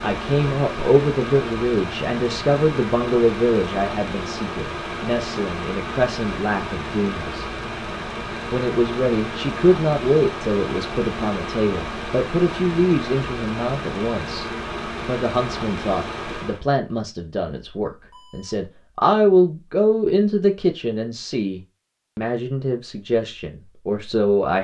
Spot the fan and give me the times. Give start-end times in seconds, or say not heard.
0.0-16.6.